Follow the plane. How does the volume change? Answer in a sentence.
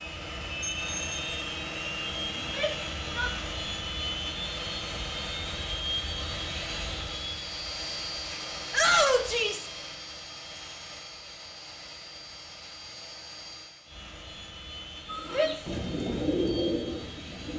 The loudness of the plane goes down.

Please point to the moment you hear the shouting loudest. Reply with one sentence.
The volume of the shouting peaks at 9 seconds.